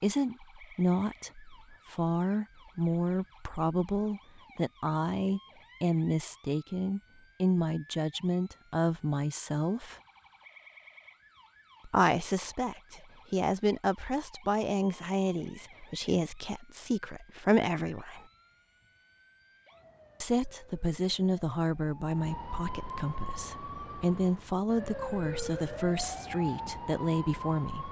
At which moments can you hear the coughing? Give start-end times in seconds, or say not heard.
not heard.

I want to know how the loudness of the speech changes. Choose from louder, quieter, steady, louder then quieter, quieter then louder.
steady.